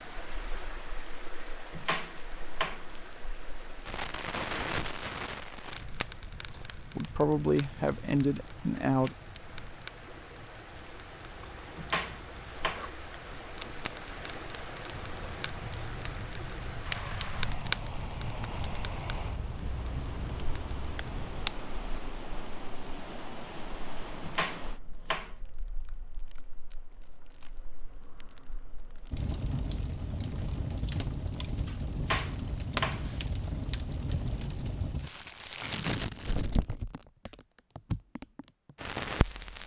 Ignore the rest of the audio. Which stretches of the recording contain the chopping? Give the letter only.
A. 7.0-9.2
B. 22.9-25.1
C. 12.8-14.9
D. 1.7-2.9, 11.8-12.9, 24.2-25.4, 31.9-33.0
D.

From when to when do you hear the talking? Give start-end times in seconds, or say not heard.
7.0-9.2.